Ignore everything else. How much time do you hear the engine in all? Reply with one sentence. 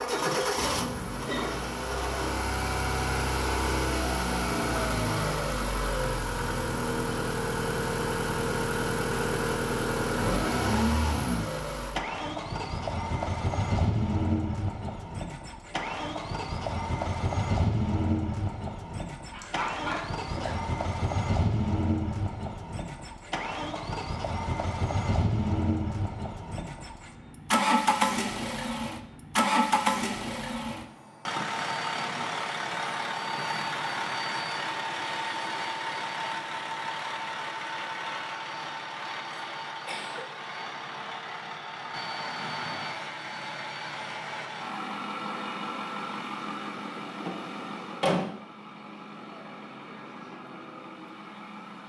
You can hear the engine for 52 seconds altogether.